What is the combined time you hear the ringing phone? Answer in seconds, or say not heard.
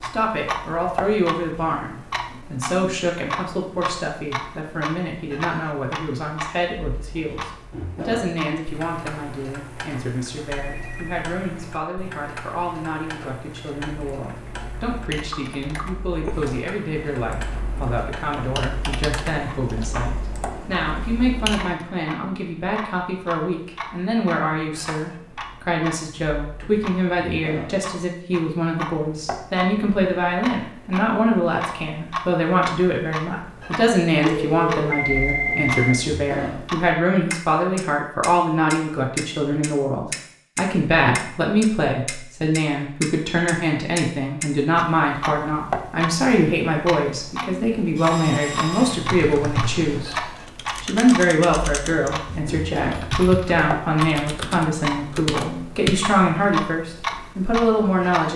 4 s.